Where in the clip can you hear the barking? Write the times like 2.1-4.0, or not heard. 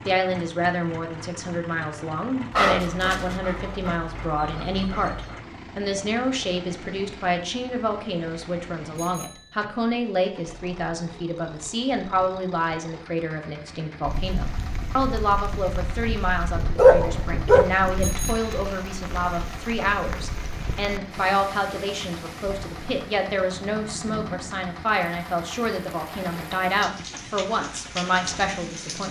2.5-5.4, 16.8-17.8.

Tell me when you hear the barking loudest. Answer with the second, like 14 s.
17 s.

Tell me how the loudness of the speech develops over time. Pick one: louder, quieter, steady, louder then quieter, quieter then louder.
steady.